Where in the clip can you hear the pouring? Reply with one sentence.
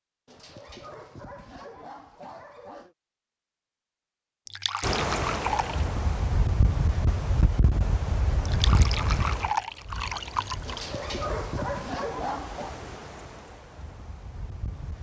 The pouring can be heard from 4.5 to 5.8 s and from 8.4 to 10.9 s.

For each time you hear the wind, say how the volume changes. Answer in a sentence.
You can hear the wind from 4.8 to 14.9 s, getting quieter.